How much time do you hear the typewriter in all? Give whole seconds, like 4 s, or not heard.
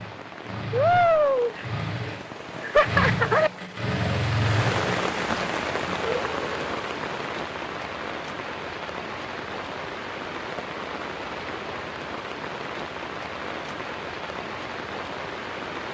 not heard.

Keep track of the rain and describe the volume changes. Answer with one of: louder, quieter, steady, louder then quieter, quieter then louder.
quieter.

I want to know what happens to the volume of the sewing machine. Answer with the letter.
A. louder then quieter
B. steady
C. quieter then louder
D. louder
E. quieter
A.